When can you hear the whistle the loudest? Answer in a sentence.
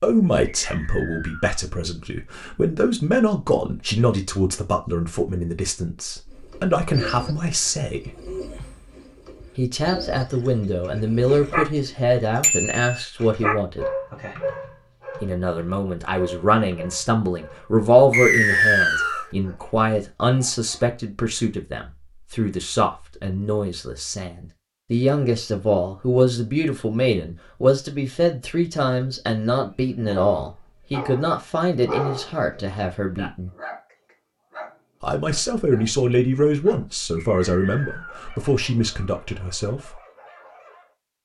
The volume of the whistle peaks at 19 seconds.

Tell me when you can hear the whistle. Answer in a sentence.
The whistle can be heard from 0.7 to 1.6 s, from 18.1 to 19.2 s and from 37.1 to 38.3 s.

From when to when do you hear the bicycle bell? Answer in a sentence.
You can hear the bicycle bell from 12.4 to 13.1 s.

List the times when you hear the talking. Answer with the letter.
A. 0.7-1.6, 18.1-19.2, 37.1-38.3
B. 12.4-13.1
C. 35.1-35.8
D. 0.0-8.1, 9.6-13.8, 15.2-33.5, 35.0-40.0
D.